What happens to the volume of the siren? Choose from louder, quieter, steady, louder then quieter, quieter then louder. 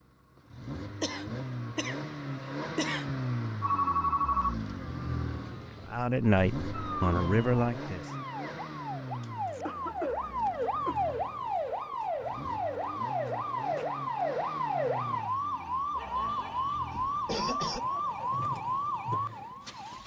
louder.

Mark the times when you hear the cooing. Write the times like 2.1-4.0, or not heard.
not heard.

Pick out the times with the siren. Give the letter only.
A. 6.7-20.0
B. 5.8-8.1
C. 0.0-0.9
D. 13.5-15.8
A.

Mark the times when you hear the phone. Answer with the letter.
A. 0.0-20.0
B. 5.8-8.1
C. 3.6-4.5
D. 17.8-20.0
C.